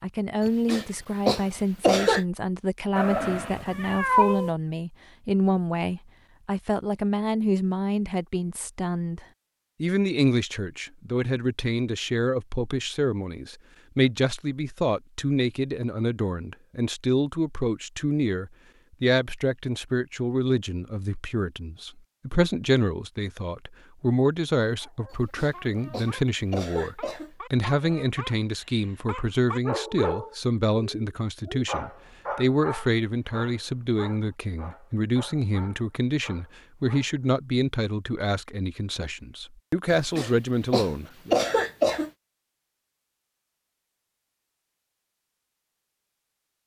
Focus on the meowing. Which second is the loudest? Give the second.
4 s.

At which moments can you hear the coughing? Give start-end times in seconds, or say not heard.
0.4-2.2, 25.1-27.3, 40.1-42.1.